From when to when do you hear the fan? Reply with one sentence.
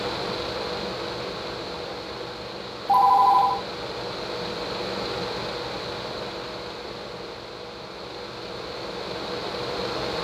The fan can be heard from 0.0 to 10.1 s.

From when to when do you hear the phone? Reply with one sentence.
You can hear the phone from 2.9 to 3.6 s.